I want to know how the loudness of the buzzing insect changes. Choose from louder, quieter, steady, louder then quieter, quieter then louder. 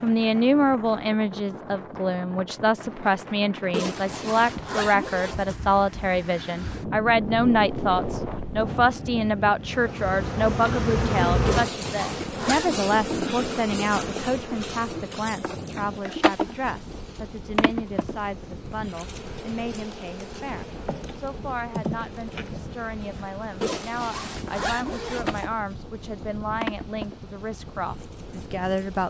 quieter.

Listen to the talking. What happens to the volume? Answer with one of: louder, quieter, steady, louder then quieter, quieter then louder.
quieter.